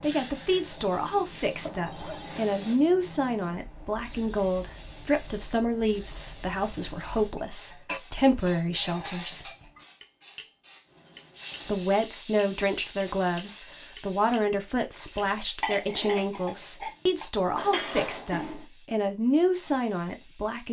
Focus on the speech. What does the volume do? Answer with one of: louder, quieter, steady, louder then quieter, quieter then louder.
steady.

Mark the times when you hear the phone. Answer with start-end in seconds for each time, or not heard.
1.6-2.5.